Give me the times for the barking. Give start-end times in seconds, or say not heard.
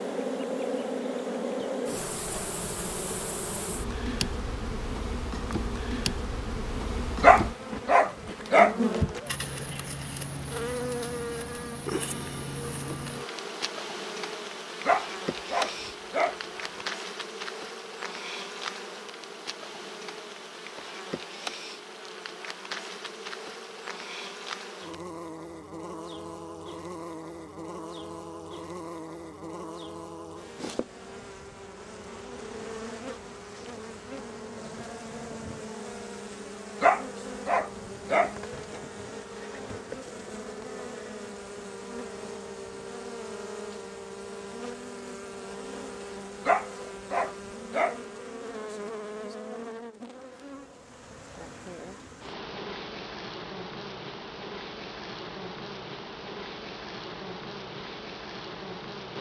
7.2-9.2, 14.8-16.8, 36.8-38.8, 46.5-48.0.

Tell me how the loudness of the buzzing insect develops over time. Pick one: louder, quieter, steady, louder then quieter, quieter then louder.
quieter.